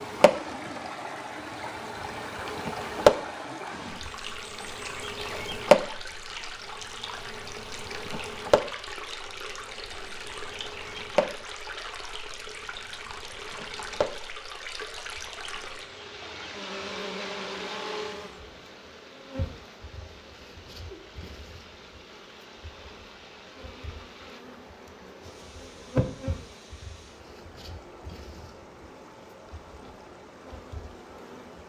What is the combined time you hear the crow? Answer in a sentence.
You can't hear the crow here.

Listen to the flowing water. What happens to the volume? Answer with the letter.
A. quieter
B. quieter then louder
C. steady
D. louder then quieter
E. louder
A.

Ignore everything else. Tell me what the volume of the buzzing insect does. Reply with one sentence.
The loudness of the buzzing insect goes down, then up.